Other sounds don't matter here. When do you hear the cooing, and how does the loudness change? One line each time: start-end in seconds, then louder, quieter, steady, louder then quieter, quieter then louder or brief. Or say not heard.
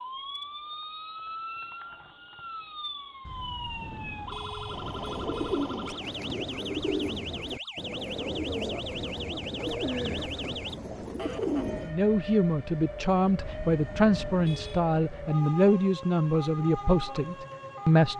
4.7-11.9 steady.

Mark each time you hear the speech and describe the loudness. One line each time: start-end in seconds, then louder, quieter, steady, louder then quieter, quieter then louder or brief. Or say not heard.
11.8-18.1 steady.